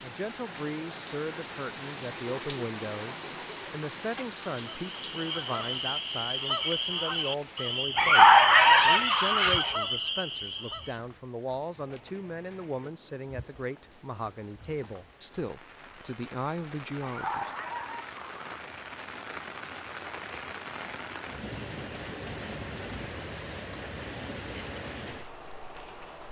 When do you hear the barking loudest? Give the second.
8 s.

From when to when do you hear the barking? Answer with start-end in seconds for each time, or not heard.
8.0-9.7, 17.0-18.5.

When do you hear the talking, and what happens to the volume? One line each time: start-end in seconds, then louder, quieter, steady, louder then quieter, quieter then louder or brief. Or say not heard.
0.0-17.5 steady.